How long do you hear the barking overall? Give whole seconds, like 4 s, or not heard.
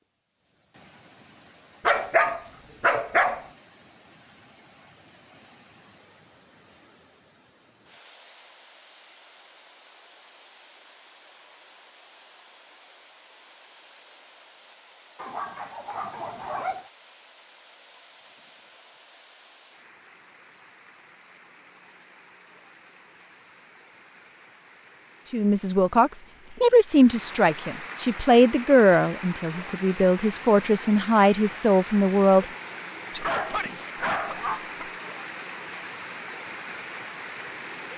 5 s.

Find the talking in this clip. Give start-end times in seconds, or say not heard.
25.3-32.5.